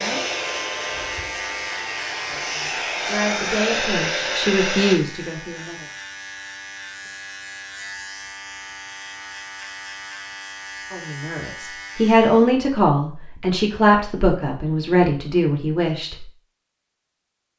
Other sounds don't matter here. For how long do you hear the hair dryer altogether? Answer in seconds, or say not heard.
5 s.